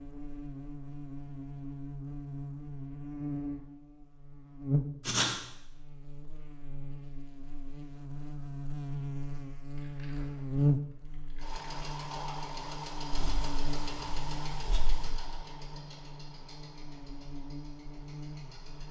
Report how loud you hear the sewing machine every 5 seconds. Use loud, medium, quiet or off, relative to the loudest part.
off, off, loud, medium.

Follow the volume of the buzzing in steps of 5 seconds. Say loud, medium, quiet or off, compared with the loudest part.
loud, medium, loud, quiet.